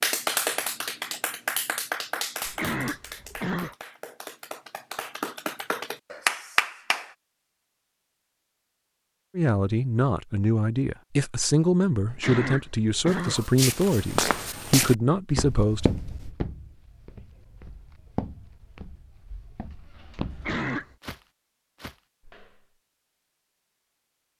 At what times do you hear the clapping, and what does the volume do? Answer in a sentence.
You can hear the clapping from 0.0 to 7.1 s, getting quieter then louder.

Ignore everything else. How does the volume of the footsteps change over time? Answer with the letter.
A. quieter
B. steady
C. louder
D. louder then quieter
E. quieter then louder
A.